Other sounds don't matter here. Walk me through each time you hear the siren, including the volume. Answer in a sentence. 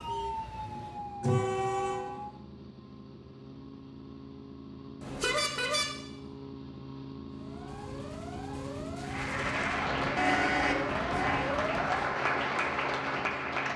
You can hear the siren briefly from 0.0 to 2.4 s; and from 7.3 to 12.1 s, getting louder.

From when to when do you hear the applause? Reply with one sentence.
The applause can be heard from 9.0 to 13.7 s.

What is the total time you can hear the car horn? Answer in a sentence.
The car horn can be heard for 3 seconds in total.